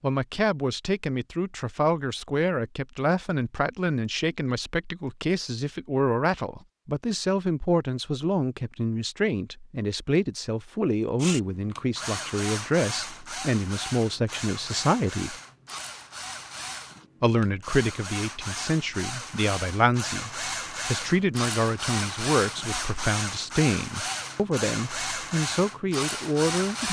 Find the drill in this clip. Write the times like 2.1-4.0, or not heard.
11.2-26.8.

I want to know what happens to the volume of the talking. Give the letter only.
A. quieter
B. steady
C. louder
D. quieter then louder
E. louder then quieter
B.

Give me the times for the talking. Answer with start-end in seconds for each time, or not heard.
0.0-15.3, 17.2-26.8.